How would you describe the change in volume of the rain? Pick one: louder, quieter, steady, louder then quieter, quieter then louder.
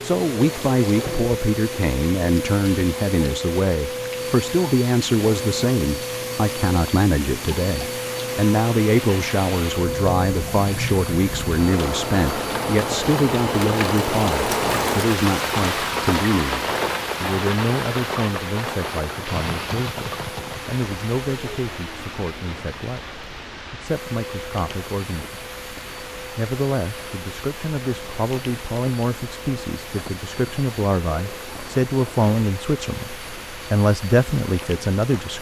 louder then quieter.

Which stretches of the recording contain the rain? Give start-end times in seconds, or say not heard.
0.0-35.3.